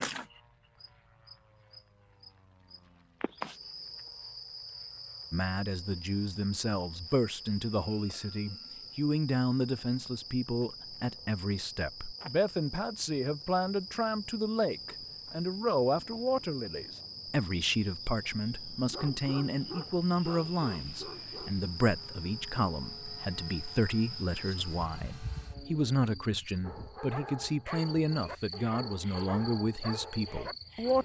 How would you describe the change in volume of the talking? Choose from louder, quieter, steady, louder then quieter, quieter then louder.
steady.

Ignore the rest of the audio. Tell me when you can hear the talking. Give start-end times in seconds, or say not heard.
5.3-31.0.